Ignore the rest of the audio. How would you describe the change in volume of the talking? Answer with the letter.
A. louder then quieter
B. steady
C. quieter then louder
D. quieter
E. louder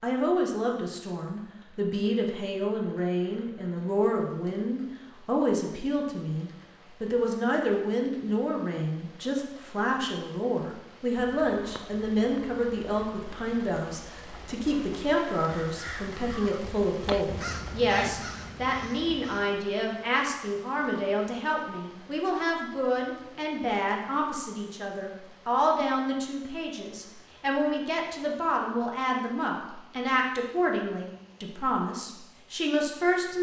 B.